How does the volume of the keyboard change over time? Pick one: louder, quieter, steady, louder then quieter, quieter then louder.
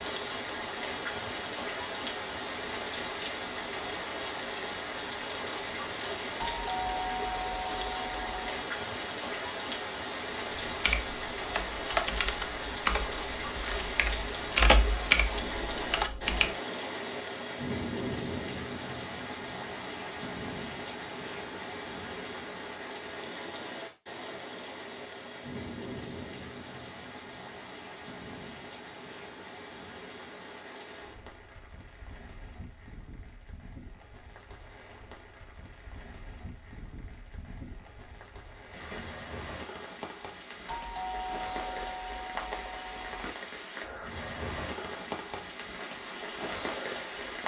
quieter then louder.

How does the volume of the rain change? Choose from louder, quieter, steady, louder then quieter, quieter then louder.
quieter then louder.